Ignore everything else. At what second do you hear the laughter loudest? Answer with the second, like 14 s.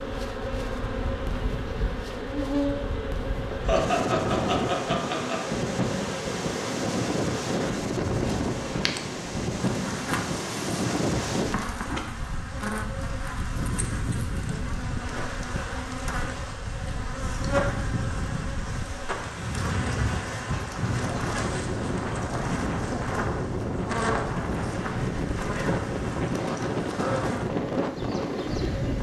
4 s.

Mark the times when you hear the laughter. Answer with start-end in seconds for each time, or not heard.
3.6-5.4.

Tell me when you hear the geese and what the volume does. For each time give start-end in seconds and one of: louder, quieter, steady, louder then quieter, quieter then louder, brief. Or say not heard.
not heard.